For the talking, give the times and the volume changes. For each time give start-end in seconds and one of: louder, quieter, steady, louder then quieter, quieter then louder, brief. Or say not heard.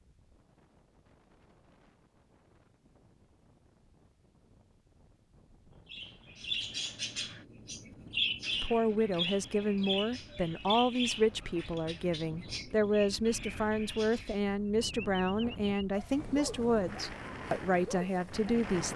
8.5-18.9 steady.